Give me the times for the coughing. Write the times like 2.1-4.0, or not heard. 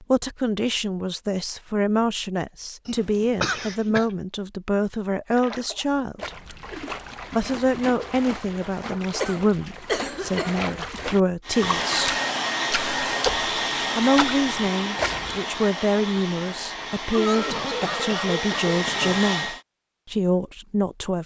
2.9-4.0, 9.2-10.6, 17.1-19.2.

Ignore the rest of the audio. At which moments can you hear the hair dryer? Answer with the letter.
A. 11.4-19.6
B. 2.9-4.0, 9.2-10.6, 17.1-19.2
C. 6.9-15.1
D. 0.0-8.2
A.